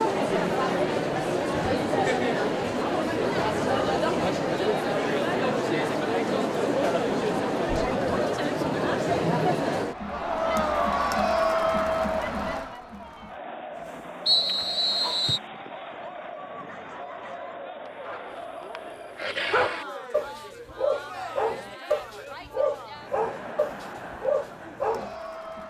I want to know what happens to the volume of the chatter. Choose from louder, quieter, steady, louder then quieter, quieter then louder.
quieter.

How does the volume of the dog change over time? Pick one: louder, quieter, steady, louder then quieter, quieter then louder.
louder.